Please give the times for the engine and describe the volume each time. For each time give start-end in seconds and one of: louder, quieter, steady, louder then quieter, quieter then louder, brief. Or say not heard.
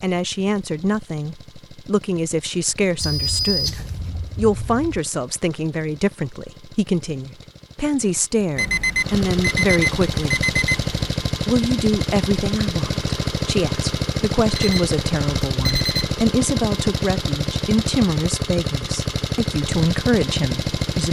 0.0-21.0 louder.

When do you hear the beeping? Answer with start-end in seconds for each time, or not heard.
3.0-5.0, 8.6-11.1, 14.6-16.1.